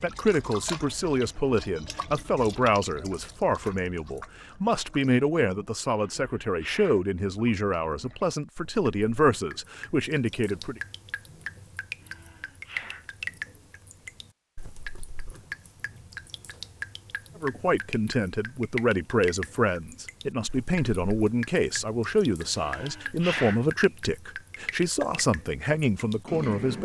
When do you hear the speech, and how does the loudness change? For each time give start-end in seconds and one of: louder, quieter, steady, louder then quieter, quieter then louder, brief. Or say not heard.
0.0-10.8 steady
17.4-26.8 steady.